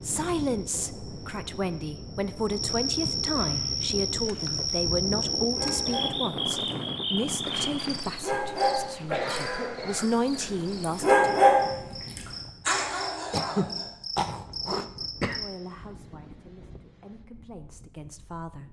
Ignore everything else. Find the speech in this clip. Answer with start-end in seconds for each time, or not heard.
0.0-11.2, 15.3-18.6.